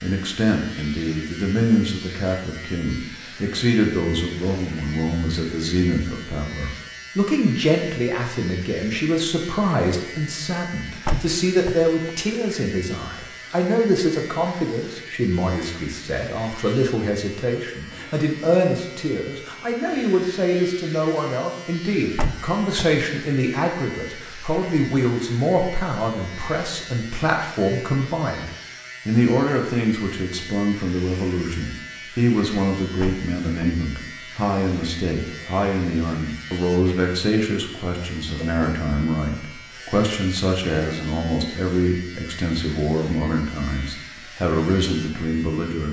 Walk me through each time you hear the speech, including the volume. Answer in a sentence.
The speech can be heard from 0.0 to 45.8 s, at a steady volume.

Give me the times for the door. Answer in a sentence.
The door can be heard from 11.1 to 12.1 s, from 22.1 to 22.9 s and from 33.0 to 33.7 s.